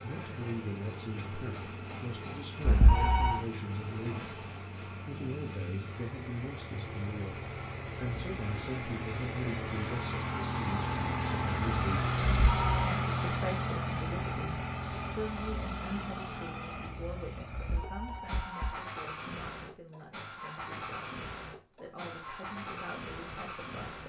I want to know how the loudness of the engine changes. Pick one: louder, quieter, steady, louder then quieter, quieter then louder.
louder then quieter.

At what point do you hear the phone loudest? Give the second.
3 s.